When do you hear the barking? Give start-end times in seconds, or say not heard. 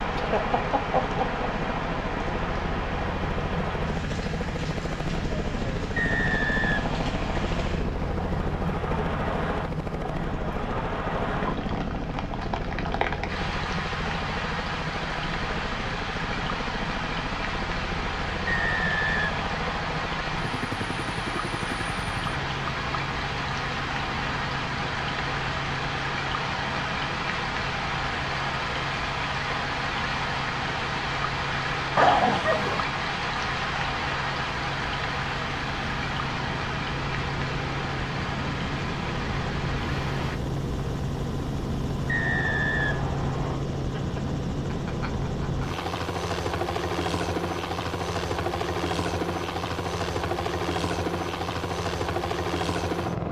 not heard.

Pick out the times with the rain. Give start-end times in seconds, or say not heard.
0.0-40.4.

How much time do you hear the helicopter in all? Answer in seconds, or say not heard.
53 s.